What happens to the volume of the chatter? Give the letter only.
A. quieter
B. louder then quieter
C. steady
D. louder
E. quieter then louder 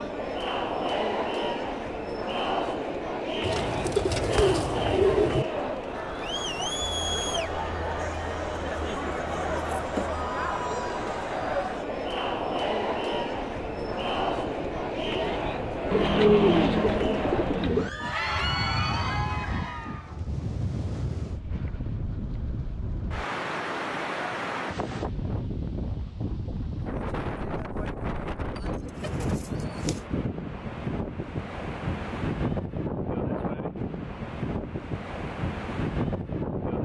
C.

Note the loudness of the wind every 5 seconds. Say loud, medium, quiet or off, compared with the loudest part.
quiet, quiet, quiet, medium, loud, loud, loud, loud.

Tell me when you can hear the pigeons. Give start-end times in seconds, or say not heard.
3.4-5.5, 15.9-17.9, 28.6-30.0.